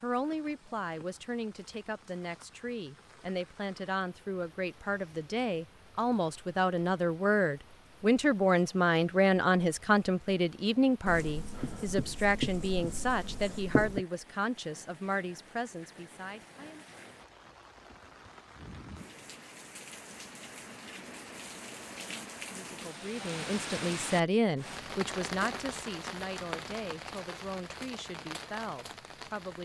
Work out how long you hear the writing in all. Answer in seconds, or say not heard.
3 s.